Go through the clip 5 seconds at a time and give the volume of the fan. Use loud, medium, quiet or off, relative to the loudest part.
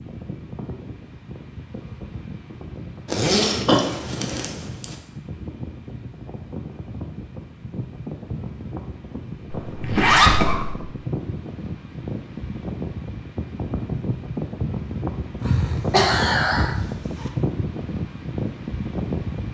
medium, medium, loud, loud.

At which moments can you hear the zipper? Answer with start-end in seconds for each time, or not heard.
3.0-5.0, 9.8-10.4, 15.4-17.3.